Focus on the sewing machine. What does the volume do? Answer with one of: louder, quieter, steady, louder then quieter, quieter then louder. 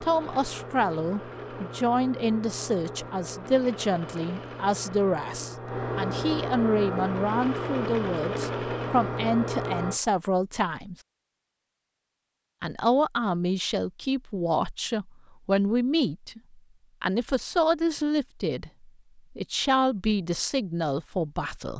louder.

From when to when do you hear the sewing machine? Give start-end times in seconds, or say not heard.
0.0-10.0.